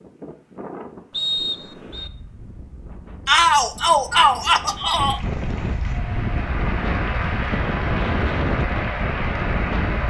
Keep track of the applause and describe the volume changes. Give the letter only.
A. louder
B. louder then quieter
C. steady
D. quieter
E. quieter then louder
A.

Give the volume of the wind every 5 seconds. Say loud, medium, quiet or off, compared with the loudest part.
quiet, loud.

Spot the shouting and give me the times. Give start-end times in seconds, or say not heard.
3.2-5.2.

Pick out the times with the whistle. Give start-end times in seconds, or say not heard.
1.1-2.1.